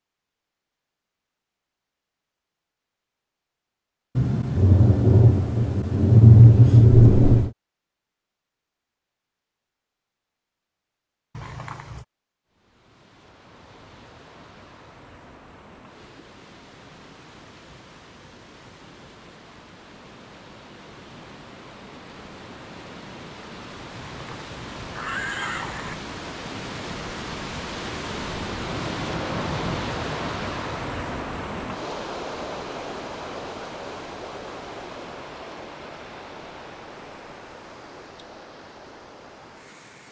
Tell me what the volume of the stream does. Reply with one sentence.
The loudness of the stream goes up, then down.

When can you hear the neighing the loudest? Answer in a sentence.
The volume of the neighing peaks at 25 seconds.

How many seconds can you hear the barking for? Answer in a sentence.
You can't hear the barking here.